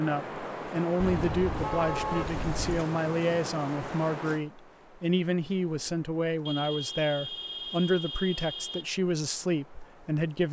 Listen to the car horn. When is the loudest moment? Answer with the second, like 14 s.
2 s.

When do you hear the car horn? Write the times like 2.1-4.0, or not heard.
1.0-2.9, 6.5-8.9.